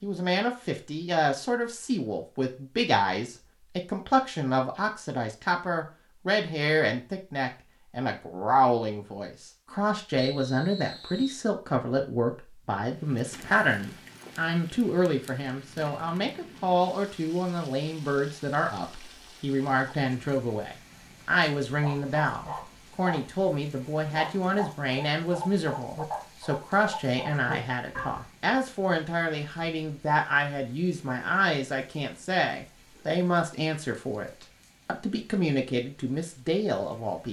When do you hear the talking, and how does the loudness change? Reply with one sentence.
The talking can be heard from 0.0 to 37.2 s, at a steady volume.